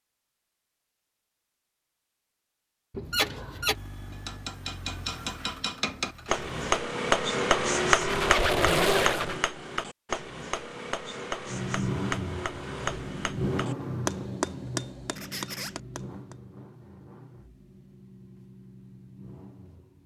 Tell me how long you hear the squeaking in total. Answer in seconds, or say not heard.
3 s.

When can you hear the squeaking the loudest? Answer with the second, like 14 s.
9 s.